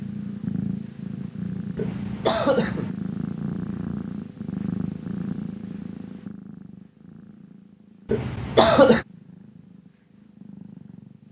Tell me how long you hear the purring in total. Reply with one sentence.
The purring can be heard for 11 seconds in total.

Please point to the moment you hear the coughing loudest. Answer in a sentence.
The loudest moment of the coughing is at 9 seconds.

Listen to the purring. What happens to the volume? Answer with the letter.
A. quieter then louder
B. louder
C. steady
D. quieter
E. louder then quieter
D.